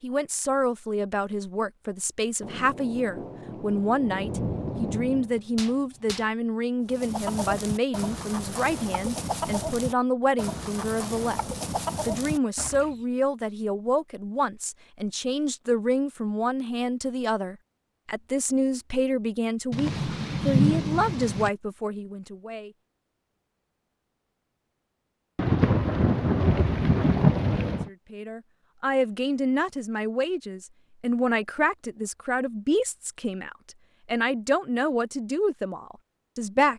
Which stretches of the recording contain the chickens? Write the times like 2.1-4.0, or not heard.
6.8-13.0.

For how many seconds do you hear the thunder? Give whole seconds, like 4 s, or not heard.
8 s.